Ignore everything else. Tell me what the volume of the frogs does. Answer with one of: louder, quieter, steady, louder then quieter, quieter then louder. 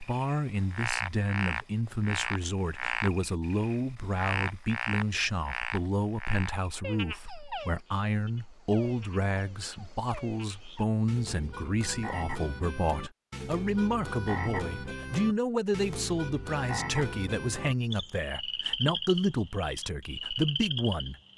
quieter then louder.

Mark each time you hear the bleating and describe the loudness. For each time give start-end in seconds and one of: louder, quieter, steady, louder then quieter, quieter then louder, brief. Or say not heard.
not heard.